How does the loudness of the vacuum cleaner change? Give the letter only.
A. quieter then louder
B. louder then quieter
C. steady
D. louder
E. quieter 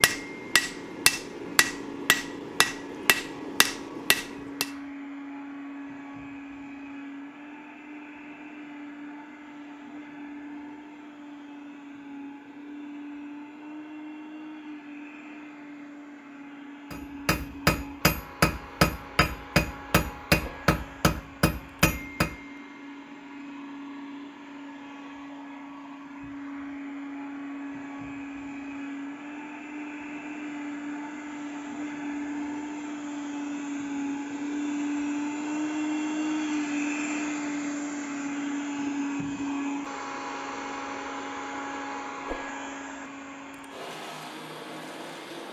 D.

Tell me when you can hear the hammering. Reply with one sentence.
You can hear the hammering from 0.0 to 4.7 s and from 16.9 to 22.4 s.